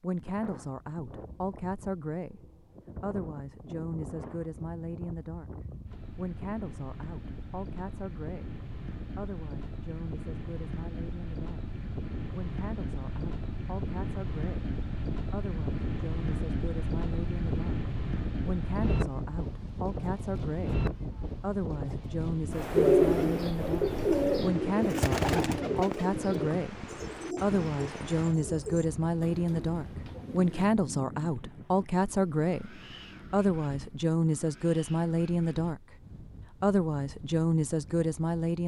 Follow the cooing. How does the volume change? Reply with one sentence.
The loudness of the cooing goes down.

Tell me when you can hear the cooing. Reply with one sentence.
The cooing can be heard from 22.8 to 30.7 s.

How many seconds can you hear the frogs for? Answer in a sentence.
You can't hear the frogs here.